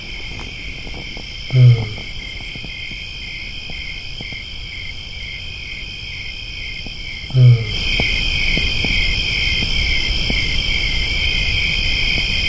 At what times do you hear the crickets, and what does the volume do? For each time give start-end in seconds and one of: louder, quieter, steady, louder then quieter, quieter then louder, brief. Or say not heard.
0.0-12.4 louder.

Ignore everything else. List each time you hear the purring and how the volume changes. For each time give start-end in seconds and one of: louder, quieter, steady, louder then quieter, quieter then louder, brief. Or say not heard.
not heard.